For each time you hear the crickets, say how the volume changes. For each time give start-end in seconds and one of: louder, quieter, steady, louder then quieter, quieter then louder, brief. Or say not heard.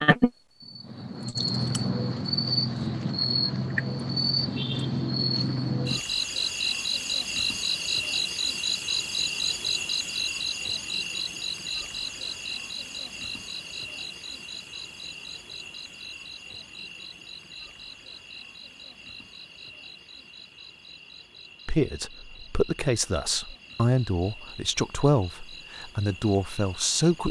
0.0-27.2 quieter.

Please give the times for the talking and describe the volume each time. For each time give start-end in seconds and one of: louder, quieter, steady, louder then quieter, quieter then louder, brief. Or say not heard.
21.6-27.2 steady.